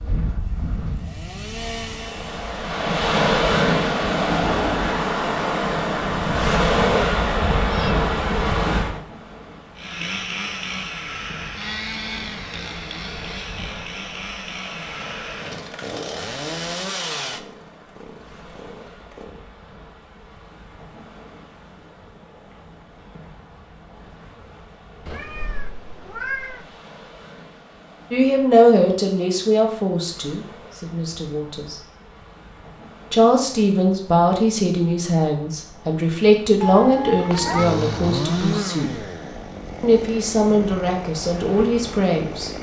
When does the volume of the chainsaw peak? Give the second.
38 s.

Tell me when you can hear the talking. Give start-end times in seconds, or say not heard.
28.1-31.8, 33.1-39.0, 39.8-42.5.